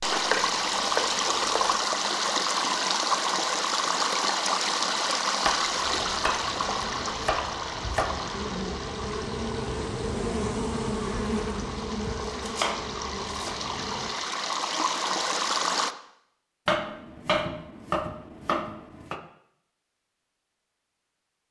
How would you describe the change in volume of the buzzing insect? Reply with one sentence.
The loudness of the buzzing insect goes up, then down.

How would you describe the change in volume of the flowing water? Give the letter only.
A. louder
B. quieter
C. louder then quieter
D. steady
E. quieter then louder
E.